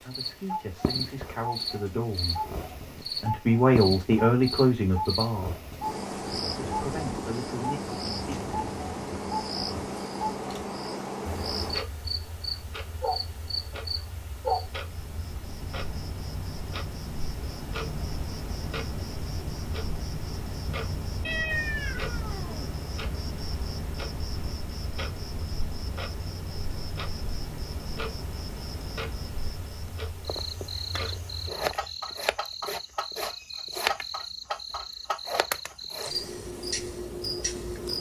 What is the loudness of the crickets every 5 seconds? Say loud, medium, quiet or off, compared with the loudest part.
loud, loud, loud, medium, medium, medium, loud, loud.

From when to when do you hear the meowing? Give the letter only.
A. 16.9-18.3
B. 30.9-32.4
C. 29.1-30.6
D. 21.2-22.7
D.